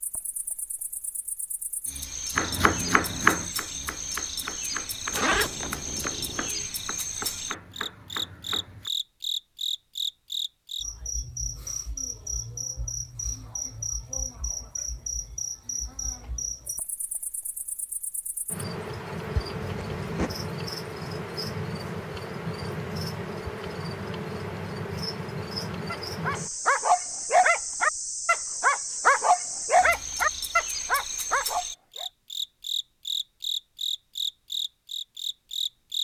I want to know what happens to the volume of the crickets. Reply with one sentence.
The volume of the crickets stays about the same.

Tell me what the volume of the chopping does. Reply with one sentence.
The volume of the chopping goes down.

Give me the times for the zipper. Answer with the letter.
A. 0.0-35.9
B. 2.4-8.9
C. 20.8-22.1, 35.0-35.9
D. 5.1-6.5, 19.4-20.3
D.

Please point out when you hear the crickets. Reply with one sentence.
You can hear the crickets from 0.0 to 35.9 s.